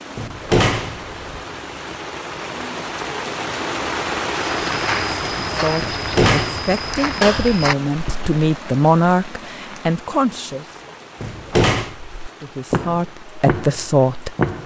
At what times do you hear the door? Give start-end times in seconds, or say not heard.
0.1-1.4, 5.8-7.6, 11.2-11.9.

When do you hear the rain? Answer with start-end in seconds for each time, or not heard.
0.0-14.6.